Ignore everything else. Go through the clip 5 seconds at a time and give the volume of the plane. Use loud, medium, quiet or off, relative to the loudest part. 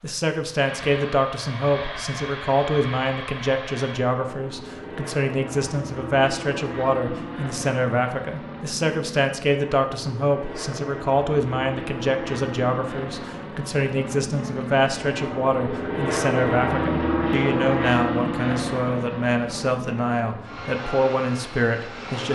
medium, medium, medium, loud, medium.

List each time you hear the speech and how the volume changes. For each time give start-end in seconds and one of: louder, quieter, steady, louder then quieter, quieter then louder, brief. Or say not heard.
0.0-22.3 steady.